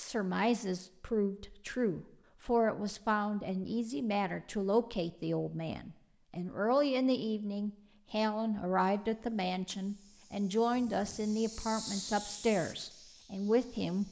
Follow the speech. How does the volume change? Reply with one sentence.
The volume of the speech stays about the same.